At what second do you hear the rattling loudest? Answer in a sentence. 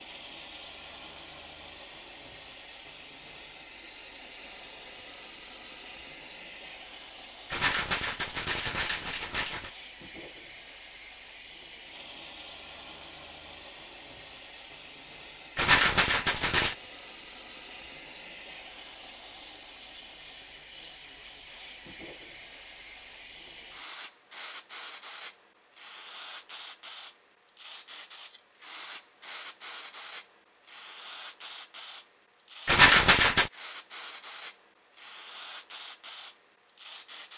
The loudest moment of the rattling is at 33 seconds.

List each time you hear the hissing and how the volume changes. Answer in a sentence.
The hissing can be heard from 0.0 to 37.3 s, getting louder.